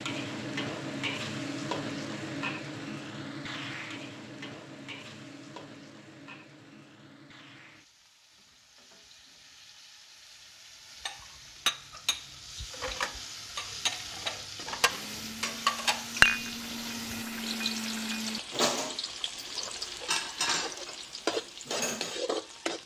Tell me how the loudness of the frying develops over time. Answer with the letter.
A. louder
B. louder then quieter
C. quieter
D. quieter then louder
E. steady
D.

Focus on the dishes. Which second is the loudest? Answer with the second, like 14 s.
16 s.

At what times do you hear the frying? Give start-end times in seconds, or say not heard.
0.0-22.8.